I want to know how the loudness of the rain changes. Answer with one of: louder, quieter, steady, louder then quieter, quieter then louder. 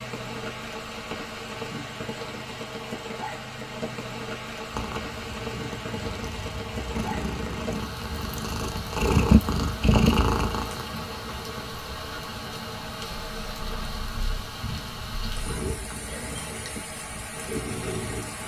steady.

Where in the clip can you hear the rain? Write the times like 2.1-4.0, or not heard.
0.0-18.4.